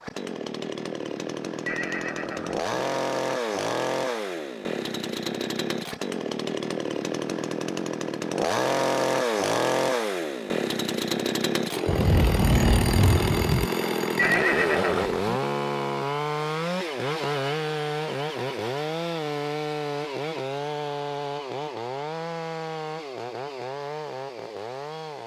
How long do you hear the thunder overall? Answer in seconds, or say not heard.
2 s.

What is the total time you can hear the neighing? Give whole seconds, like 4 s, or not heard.
2 s.